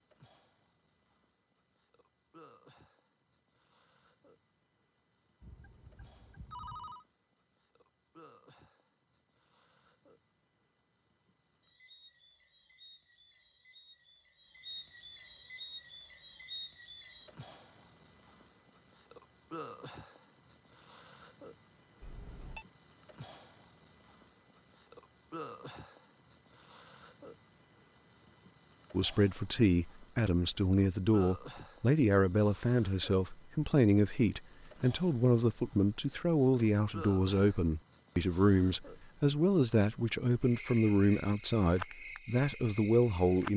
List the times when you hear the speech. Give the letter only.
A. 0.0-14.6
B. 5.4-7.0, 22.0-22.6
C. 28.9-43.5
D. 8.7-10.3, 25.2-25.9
C.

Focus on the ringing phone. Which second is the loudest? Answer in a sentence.
The loudest moment of the ringing phone is at 7 seconds.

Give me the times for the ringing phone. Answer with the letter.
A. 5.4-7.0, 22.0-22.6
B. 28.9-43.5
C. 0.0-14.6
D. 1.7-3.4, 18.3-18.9
A.